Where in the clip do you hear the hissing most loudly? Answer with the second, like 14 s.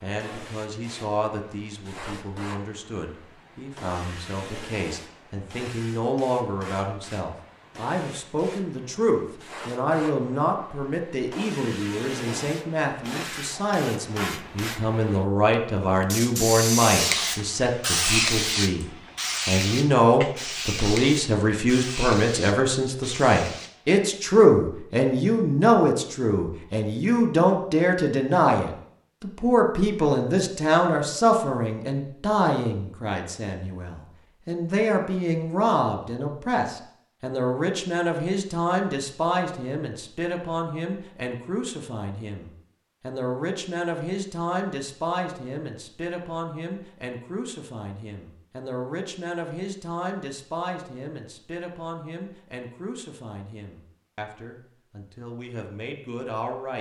18 s.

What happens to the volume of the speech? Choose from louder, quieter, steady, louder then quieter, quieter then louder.
louder then quieter.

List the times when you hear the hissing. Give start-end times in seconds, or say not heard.
0.0-23.9.